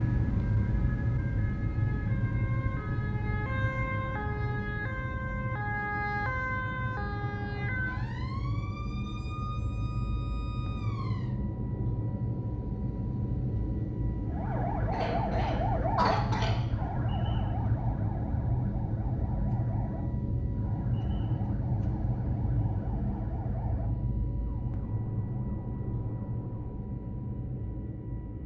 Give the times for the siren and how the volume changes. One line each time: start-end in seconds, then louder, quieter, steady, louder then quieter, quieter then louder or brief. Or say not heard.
0.0-11.3 louder then quieter
14.2-26.6 quieter.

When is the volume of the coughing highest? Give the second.
16 s.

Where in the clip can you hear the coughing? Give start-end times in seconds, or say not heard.
14.9-16.6.